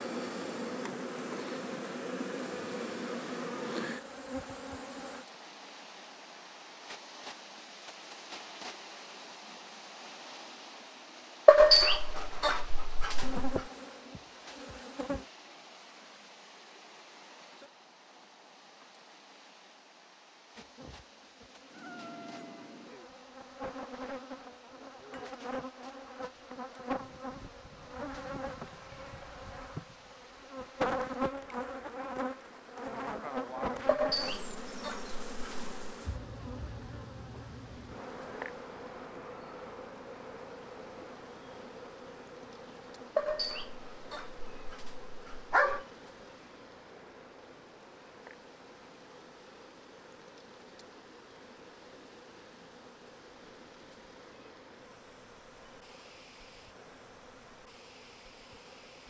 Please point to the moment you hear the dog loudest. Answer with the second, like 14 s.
12 s.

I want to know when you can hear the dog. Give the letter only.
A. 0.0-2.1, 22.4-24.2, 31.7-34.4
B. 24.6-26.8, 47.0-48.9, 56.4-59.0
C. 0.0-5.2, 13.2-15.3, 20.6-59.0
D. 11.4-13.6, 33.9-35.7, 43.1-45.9
D.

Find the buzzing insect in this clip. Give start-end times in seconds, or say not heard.
0.0-5.2, 13.2-15.3, 20.6-59.0.